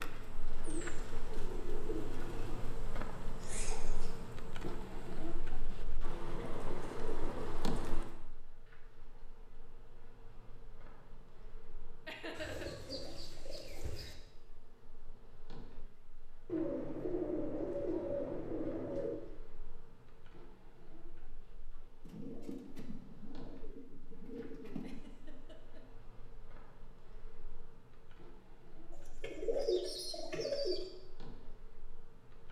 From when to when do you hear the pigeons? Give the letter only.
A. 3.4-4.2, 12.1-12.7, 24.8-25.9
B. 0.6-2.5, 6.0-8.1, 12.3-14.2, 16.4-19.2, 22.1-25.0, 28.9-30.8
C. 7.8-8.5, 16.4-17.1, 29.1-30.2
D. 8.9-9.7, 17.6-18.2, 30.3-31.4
B.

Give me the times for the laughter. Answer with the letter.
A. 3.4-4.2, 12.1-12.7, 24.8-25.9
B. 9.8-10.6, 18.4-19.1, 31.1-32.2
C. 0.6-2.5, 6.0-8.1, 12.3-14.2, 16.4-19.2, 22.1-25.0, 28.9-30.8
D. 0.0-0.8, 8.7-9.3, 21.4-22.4
A.